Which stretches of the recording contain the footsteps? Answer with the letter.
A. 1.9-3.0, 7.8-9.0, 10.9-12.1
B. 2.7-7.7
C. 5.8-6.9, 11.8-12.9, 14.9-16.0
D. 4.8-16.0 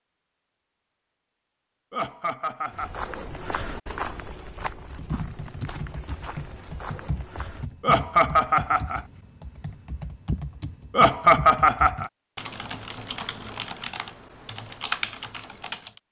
B.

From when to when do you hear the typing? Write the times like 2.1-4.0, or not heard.
4.8-16.0.